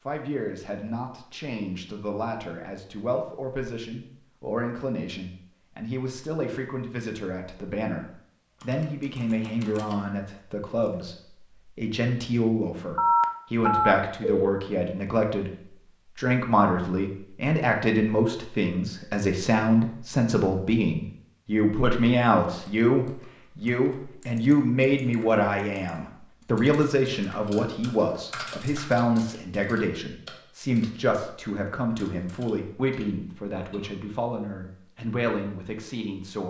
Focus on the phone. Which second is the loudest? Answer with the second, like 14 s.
13 s.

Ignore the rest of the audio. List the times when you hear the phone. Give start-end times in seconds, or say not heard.
12.9-14.6.